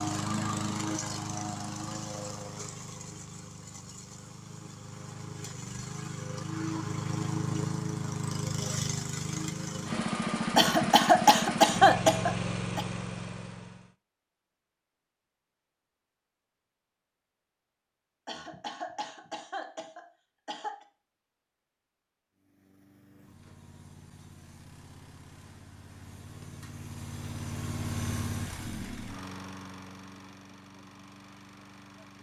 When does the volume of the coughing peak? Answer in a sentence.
The volume of the coughing peaks at 12 seconds.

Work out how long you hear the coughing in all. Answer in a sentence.
You can hear the coughing for 5 seconds altogether.